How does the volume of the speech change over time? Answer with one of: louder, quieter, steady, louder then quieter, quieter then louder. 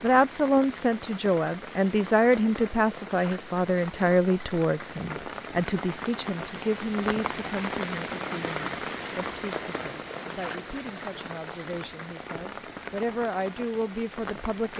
quieter then louder.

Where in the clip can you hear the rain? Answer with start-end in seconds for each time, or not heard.
0.0-14.7.